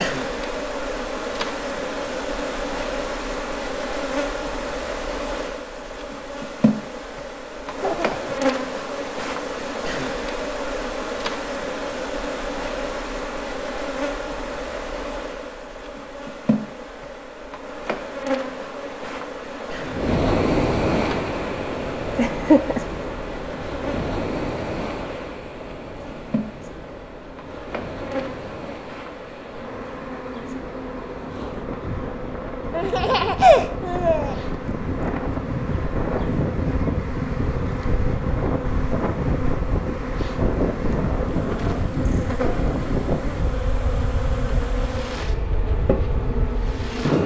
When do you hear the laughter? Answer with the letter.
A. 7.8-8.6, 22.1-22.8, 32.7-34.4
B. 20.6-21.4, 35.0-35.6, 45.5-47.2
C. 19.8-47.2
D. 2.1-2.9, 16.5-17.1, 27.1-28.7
A.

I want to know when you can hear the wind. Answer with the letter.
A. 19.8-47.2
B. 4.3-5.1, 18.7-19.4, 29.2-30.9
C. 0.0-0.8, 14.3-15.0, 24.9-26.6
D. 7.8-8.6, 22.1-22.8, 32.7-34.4
A.